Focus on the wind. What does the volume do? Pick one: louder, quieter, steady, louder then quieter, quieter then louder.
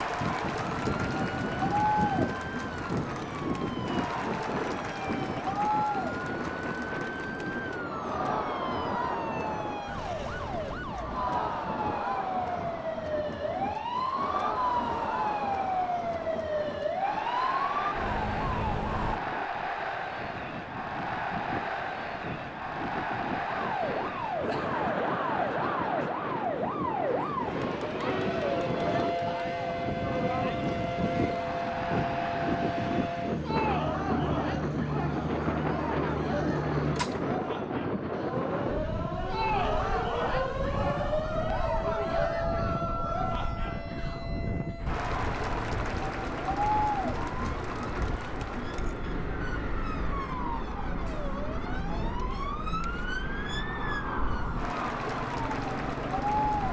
quieter then louder.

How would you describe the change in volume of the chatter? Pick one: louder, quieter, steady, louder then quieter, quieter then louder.
steady.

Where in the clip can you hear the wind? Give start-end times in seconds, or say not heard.
0.0-44.8.